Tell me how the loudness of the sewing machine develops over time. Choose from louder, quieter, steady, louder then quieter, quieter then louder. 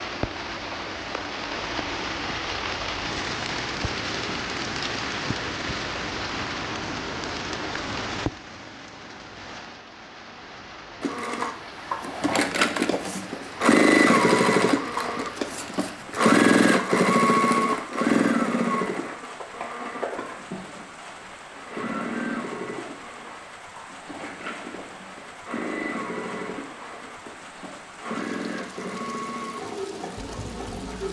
quieter.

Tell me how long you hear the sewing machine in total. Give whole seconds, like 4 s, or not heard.
20 s.